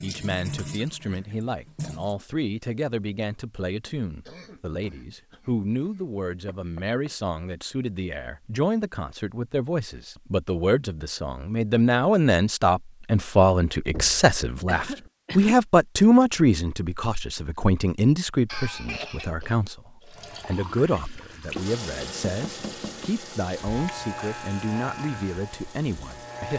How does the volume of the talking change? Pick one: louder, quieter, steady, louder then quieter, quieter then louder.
louder then quieter.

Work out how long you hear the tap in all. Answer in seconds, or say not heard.
9 s.